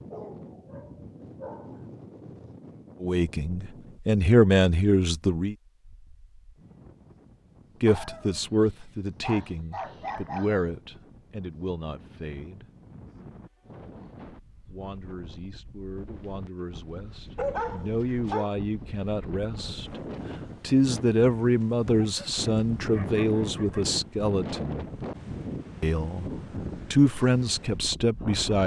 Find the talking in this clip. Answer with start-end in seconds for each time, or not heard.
3.0-5.5, 7.8-12.7, 14.7-20.0, 20.6-24.9, 25.8-26.3, 26.9-28.6.